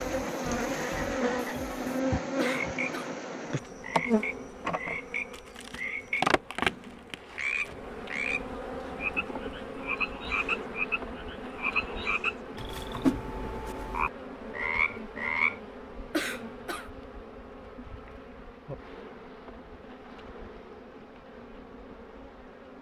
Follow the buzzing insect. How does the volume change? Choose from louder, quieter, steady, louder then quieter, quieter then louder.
quieter.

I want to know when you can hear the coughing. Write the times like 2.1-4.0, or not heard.
2.4-3.1, 16.1-16.9.